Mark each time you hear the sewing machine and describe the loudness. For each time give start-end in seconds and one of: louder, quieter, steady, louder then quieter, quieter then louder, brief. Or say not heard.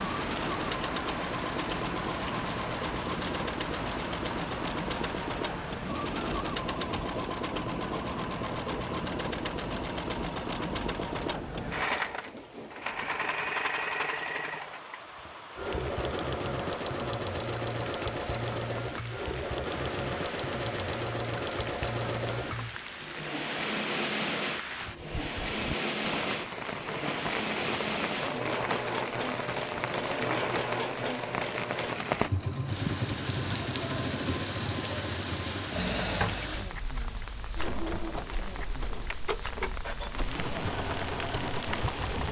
0.0-42.2 steady.